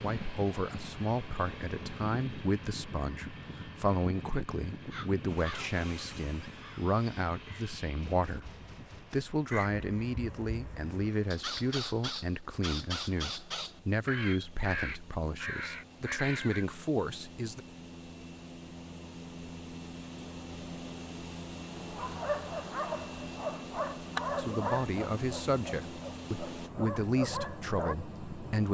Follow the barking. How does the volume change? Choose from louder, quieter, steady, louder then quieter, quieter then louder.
quieter then louder.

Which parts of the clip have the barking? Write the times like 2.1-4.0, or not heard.
21.8-27.9.